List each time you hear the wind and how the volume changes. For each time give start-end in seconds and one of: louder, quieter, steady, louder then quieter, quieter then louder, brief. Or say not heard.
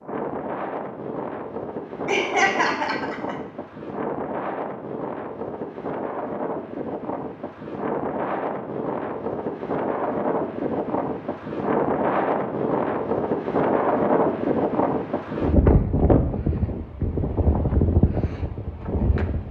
0.0-19.4 louder.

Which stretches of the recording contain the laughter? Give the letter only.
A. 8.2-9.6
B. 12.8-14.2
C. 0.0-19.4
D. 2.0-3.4
D.